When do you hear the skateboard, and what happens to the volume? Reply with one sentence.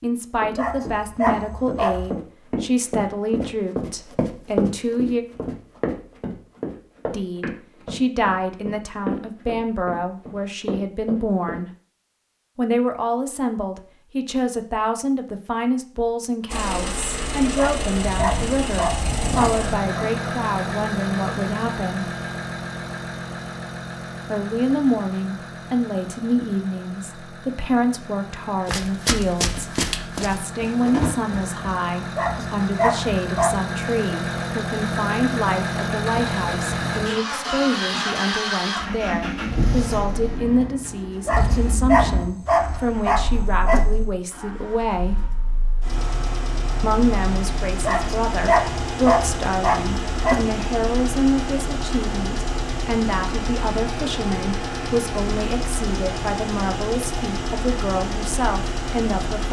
You can't hear the skateboard here.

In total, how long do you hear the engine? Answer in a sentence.
You can hear the engine for 43 seconds altogether.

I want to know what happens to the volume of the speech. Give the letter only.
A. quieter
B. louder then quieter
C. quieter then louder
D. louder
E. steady
E.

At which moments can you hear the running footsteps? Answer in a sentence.
The running footsteps can be heard from 0.3 to 11.6 s and from 28.6 to 31.6 s.